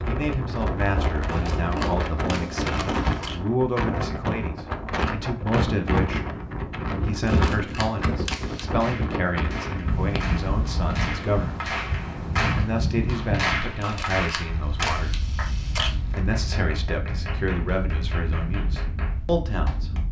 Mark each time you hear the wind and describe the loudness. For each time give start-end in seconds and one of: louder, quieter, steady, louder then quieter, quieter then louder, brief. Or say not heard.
0.0-20.0 quieter.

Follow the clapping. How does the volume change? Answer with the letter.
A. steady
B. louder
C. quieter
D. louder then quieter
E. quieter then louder
D.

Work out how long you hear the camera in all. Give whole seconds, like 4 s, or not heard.
6 s.